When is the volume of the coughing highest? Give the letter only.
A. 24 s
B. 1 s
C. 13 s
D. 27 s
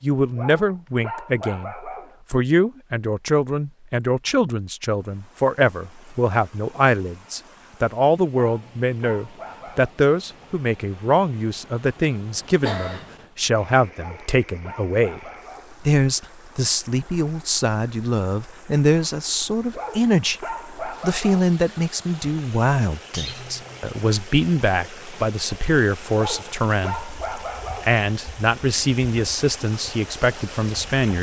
C.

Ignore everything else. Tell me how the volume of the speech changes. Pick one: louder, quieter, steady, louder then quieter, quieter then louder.
steady.